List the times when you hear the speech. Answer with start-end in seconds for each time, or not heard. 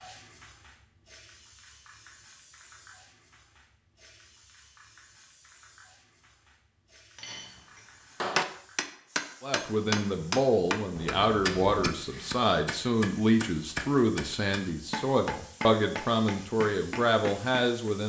9.4-18.0.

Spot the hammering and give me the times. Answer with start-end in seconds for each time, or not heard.
7.2-17.9.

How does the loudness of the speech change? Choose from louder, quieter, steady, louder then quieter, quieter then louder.
steady.